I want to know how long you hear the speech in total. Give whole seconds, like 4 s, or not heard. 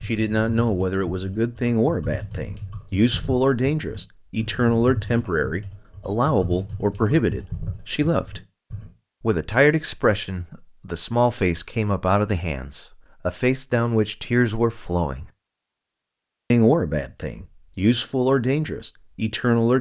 18 s.